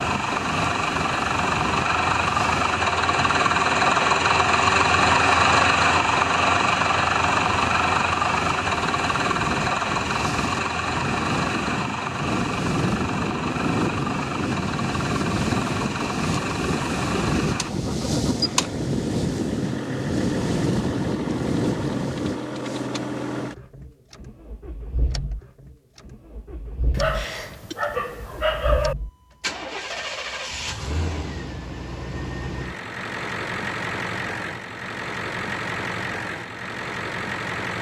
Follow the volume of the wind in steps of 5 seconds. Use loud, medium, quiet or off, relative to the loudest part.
medium, medium, loud, loud, loud, off, off, off.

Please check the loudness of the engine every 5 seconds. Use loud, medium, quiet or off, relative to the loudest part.
loud, loud, medium, medium, medium, quiet, medium, medium.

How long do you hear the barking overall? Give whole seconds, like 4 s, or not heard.
2 s.